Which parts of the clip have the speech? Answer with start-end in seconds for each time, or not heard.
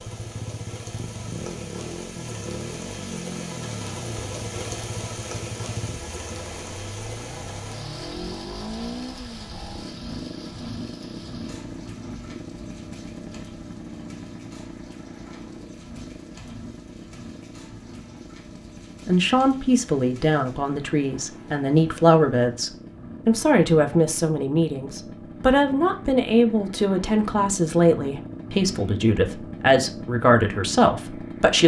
19.1-31.6.